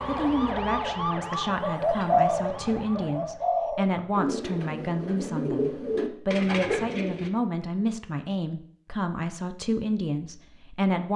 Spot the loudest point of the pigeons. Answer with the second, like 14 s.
2 s.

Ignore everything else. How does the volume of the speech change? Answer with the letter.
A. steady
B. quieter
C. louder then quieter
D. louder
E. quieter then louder
A.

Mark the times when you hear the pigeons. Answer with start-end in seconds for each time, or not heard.
1.2-7.3.